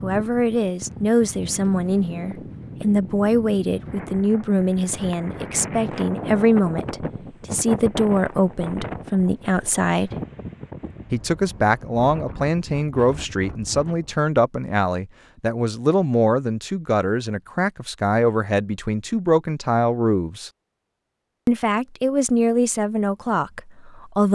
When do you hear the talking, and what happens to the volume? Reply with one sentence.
The talking can be heard from 0.0 to 10.1 s, at a steady volume; from 11.1 to 20.5 s, at a steady volume; and briefly from 21.4 to 24.2 s.